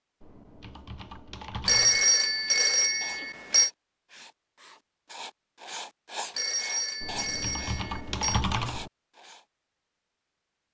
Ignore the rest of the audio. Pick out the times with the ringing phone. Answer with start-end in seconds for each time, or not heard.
1.6-3.7, 6.3-8.4.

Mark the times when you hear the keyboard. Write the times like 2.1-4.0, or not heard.
0.2-2.1, 7.0-8.9.